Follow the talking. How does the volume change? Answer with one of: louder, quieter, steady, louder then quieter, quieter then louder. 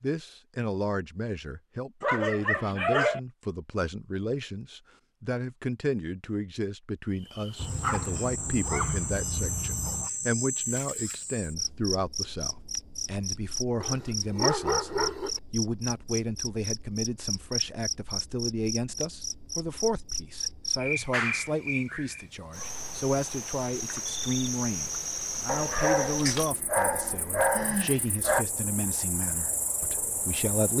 steady.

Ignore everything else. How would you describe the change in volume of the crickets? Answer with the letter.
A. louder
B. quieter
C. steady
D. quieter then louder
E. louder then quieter
C.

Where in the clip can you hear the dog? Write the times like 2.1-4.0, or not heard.
2.0-3.2, 7.5-10.1, 13.8-15.4, 20.9-22.6, 25.4-28.4.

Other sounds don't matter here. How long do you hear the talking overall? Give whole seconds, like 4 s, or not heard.
31 s.